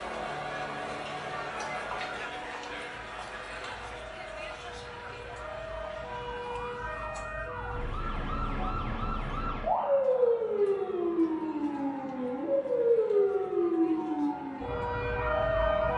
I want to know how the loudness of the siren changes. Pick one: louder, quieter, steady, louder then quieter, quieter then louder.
louder.